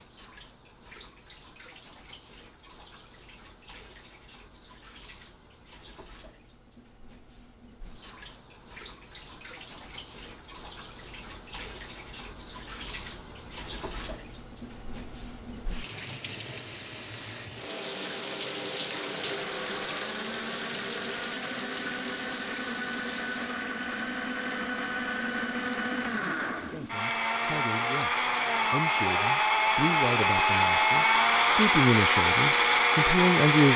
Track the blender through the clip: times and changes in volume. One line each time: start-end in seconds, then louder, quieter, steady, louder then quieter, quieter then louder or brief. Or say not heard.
18.9-33.7 louder.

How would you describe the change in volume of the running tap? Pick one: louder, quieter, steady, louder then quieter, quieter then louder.
louder then quieter.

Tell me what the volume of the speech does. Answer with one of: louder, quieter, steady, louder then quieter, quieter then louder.
louder.